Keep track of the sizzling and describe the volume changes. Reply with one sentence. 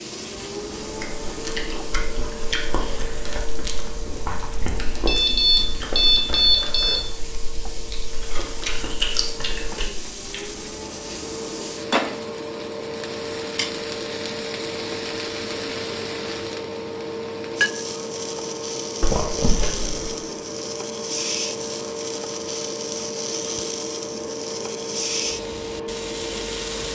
The volume of the sizzling goes up.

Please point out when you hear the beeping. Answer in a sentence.
The beeping can be heard from 5.0 to 7.0 s and from 19.0 to 20.1 s.